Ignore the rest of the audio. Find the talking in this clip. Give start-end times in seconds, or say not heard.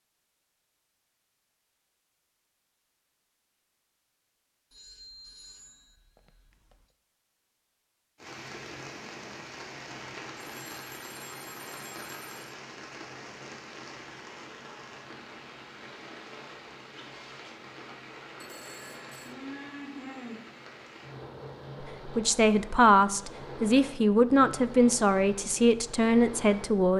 22.1-26.9.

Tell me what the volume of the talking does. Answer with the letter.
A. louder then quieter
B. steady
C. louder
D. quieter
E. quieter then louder
B.